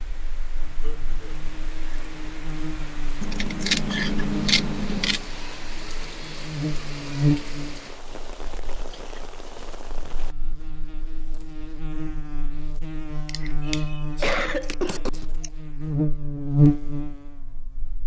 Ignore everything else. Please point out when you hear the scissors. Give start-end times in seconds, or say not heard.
3.2-5.2, 13.2-15.2.